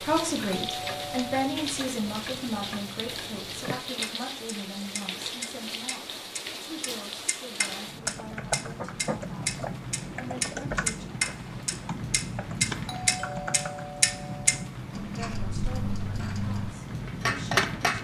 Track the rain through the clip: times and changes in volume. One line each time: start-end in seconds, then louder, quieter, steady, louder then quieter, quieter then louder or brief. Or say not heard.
0.0-17.9 steady.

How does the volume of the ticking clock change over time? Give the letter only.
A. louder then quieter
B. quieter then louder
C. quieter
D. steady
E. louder
E.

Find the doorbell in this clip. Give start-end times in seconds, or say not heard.
0.5-1.4, 12.8-14.8.